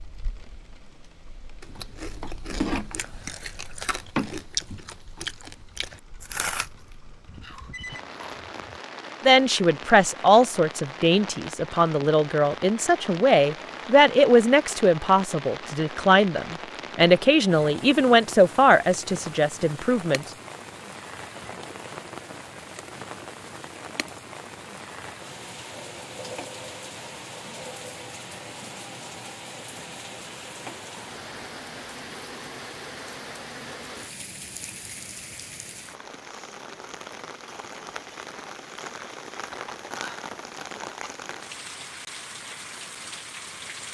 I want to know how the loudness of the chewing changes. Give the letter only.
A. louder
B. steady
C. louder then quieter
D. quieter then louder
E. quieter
E.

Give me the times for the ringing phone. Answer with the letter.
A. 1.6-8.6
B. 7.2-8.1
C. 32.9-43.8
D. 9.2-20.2
B.